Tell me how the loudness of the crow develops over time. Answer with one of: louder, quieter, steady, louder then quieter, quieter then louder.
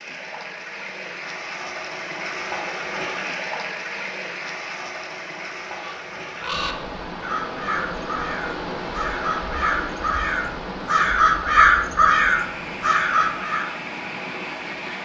louder.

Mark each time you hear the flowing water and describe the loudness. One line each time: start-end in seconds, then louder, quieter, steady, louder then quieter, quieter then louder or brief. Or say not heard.
0.0-14.9 steady.